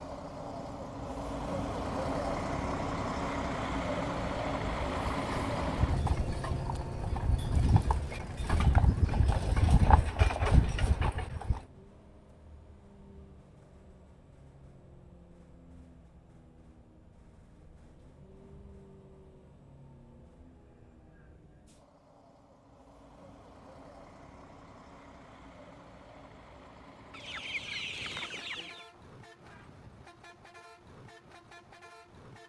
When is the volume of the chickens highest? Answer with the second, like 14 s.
28 s.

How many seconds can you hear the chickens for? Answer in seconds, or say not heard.
2 s.